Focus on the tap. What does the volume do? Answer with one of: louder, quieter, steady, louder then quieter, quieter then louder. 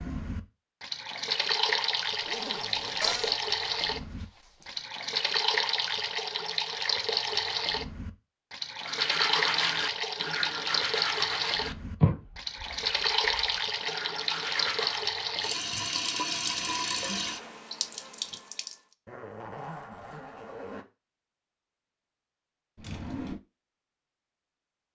steady.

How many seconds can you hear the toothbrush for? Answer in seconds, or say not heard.
6 s.